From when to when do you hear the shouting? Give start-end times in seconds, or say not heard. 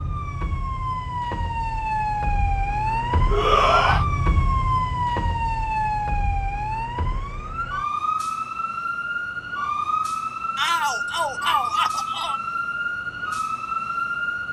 3.3-4.0, 10.6-12.4.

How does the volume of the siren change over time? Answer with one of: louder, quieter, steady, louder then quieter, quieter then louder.
steady.